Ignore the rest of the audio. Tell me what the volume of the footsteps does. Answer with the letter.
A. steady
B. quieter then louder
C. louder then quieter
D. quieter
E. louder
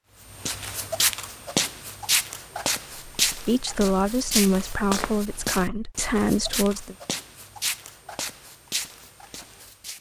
D.